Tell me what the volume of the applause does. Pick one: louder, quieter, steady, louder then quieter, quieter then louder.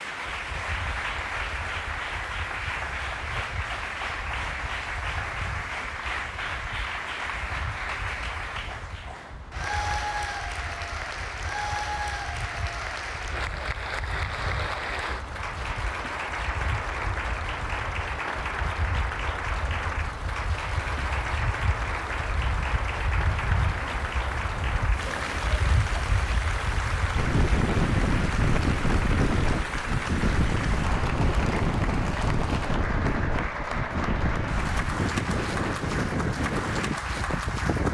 steady.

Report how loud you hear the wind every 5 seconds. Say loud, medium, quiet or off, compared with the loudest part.
quiet, quiet, quiet, quiet, medium, loud, loud, loud.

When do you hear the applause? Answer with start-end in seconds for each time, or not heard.
0.0-37.8.